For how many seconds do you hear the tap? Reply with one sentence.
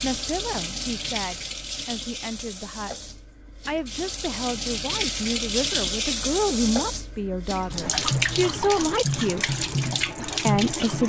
The tap can be heard for 11 seconds in total.